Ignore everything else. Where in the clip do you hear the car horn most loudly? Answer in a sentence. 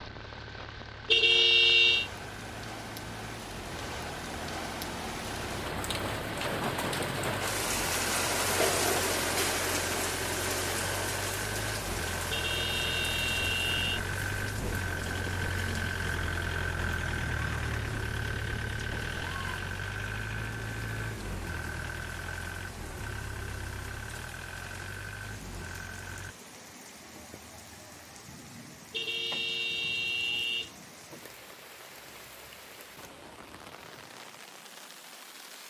The loudest moment of the car horn is at 2 seconds.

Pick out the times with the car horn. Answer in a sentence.
The car horn can be heard from 1.1 to 2.1 s, from 12.3 to 14.0 s and from 28.9 to 30.7 s.